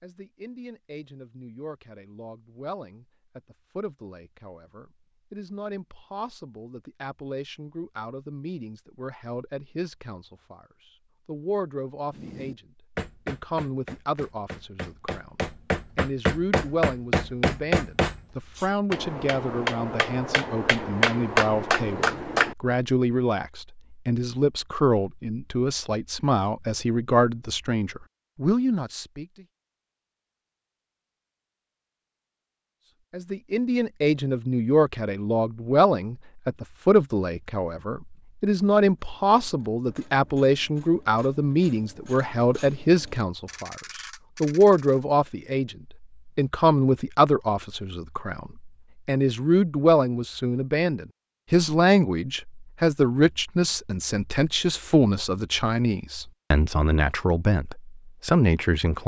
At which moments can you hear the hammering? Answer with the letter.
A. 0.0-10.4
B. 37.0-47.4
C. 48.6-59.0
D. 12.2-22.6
D.